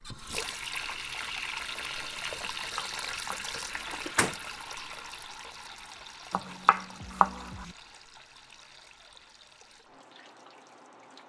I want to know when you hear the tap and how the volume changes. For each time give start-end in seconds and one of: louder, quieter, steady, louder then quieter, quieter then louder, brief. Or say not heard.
0.0-11.2 quieter.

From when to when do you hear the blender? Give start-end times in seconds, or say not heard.
not heard.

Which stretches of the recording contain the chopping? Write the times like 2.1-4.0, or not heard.
2.5-3.7, 6.3-7.7.